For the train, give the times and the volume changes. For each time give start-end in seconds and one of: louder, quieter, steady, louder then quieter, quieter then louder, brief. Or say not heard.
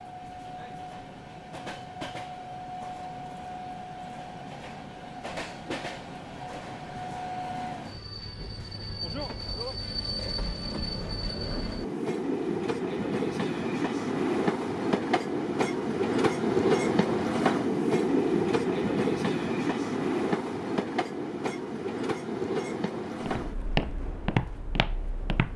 0.0-25.5 louder then quieter.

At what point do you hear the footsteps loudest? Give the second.
24 s.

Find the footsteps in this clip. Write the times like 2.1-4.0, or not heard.
23.2-25.5.